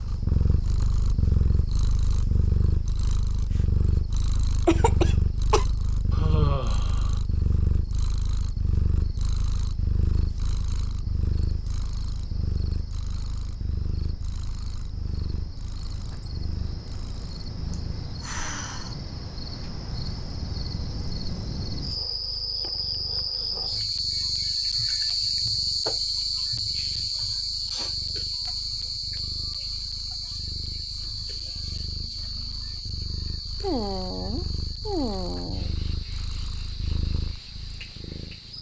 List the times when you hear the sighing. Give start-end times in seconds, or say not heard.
6.1-7.2, 17.7-18.9, 33.6-35.8.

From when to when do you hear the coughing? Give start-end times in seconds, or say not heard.
4.7-5.7.